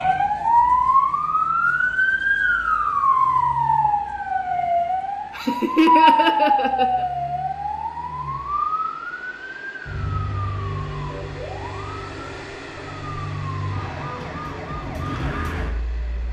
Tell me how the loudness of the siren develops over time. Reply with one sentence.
The volume of the siren goes down.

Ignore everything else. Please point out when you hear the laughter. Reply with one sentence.
You can hear the laughter from 5.3 to 7.0 s.